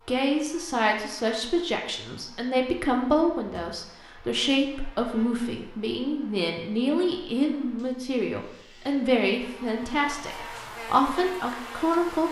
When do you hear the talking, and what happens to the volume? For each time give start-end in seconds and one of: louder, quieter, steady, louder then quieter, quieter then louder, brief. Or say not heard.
0.1-12.2 steady.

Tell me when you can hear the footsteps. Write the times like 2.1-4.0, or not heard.
not heard.